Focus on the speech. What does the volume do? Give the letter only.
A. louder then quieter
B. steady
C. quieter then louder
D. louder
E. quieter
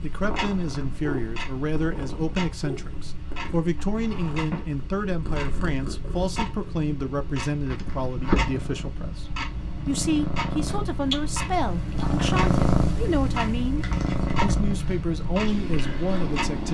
B.